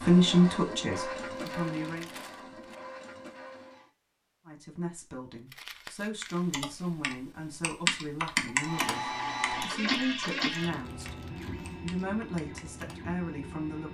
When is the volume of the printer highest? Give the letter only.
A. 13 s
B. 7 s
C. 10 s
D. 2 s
C.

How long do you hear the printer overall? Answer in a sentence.
The printer can be heard for 9 seconds in total.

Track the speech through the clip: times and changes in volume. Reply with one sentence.
The speech can be heard briefly from 0.0 to 2.1 s; and from 4.5 to 13.8 s, at a steady volume.